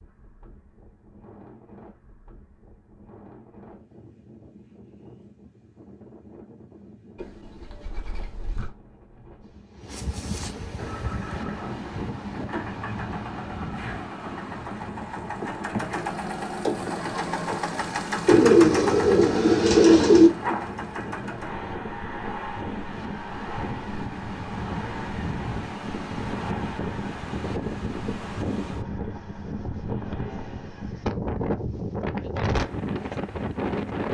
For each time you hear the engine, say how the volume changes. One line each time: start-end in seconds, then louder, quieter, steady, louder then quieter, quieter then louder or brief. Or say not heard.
10.8-31.1 louder then quieter.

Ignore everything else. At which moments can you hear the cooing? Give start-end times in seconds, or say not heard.
7.2-8.7, 18.2-20.3.